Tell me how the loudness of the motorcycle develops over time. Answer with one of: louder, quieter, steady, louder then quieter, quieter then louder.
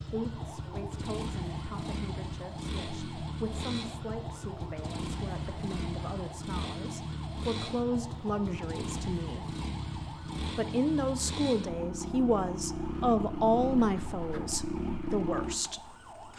steady.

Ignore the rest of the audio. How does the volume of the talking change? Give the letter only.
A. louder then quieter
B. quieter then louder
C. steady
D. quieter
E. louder
E.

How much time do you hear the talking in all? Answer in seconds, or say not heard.
15 s.